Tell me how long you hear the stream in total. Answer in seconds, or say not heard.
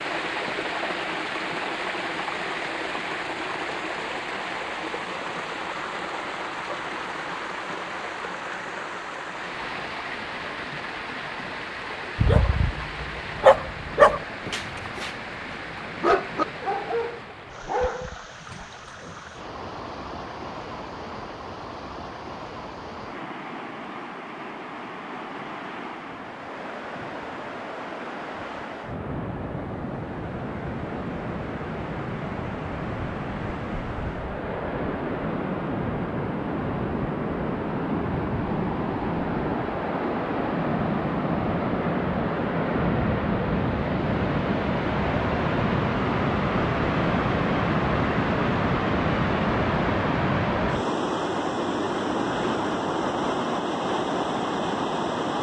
55 s.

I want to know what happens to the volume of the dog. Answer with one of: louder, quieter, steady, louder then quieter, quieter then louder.
quieter.